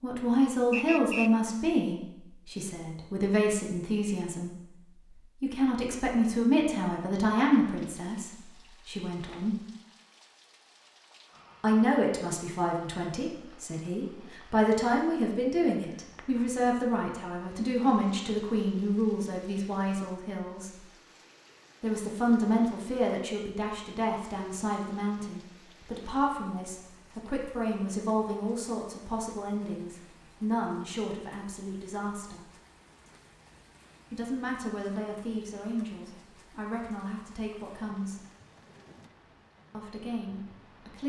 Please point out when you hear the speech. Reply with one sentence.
You can hear the speech from 0.0 to 4.8 s, from 5.4 to 9.6 s, from 11.6 to 20.9 s, from 21.8 to 32.5 s, from 34.1 to 38.2 s and from 39.7 to 41.0 s.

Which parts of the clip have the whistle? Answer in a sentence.
The whistle can be heard from 0.7 to 1.3 s.